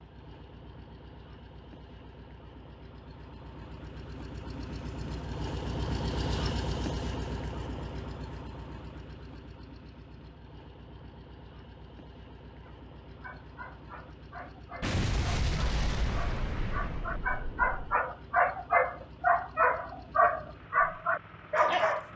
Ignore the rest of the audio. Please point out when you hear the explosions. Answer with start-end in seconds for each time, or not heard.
14.8-18.0.